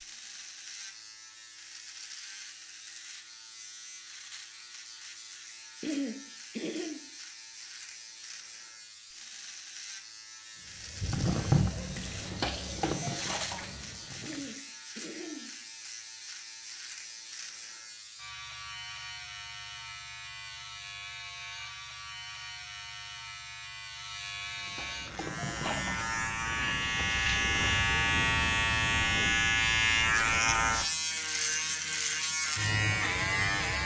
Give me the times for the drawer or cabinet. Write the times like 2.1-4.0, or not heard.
not heard.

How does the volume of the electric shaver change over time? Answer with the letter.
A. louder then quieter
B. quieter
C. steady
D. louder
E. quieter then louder
D.